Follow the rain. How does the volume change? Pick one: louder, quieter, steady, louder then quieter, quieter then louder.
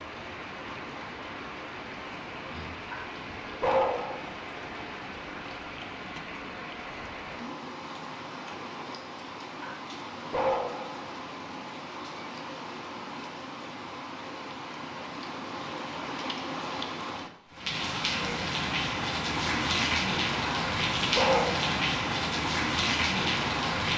louder.